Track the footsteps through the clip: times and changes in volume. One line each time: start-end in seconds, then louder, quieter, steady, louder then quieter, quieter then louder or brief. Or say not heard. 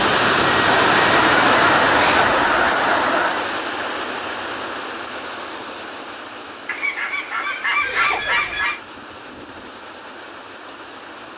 not heard.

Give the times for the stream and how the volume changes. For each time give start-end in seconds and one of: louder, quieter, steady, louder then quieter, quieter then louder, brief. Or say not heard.
0.0-11.3 quieter.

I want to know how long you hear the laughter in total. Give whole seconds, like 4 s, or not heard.
2 s.